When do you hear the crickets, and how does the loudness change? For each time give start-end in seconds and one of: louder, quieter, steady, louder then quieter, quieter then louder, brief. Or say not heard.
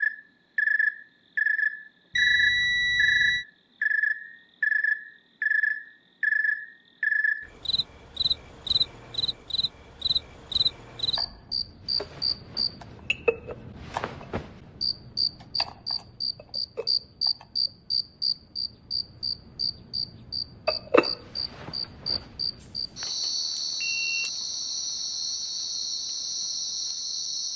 0.0-27.5 quieter.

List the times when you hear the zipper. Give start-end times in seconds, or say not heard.
not heard.